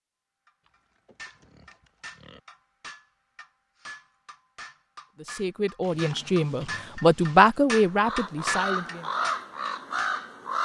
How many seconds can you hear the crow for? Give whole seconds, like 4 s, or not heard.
3 s.